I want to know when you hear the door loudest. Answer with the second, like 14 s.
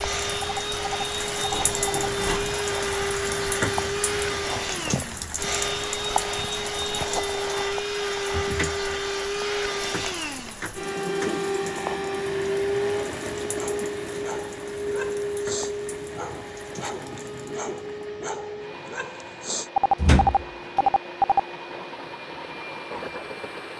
20 s.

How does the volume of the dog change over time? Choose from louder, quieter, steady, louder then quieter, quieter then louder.
steady.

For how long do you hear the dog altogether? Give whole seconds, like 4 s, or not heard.
6 s.